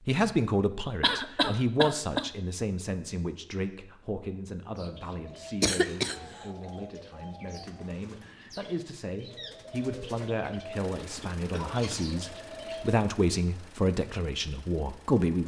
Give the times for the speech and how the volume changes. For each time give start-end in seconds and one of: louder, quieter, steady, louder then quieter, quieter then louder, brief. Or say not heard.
0.1-15.4 quieter then louder.